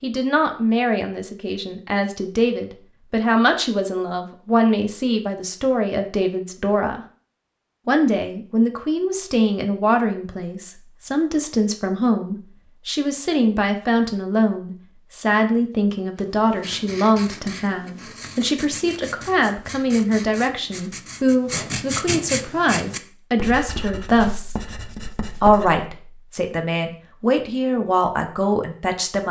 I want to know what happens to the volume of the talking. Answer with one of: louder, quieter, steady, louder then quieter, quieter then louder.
steady.